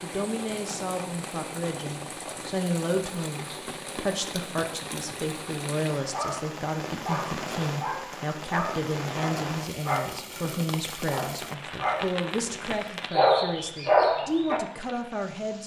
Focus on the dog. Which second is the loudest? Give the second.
14 s.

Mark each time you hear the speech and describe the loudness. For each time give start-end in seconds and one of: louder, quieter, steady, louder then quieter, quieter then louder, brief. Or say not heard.
0.0-15.6 steady.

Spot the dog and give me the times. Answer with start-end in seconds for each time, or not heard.
6.1-14.6.